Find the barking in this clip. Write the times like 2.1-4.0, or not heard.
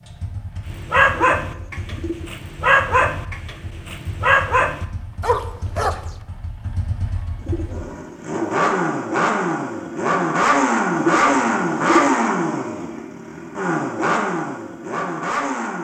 0.7-6.1.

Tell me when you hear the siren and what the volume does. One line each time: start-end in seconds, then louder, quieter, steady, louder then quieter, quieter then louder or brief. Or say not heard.
not heard.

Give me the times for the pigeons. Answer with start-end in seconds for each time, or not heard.
1.2-2.3, 7.3-8.6, 10.9-12.2.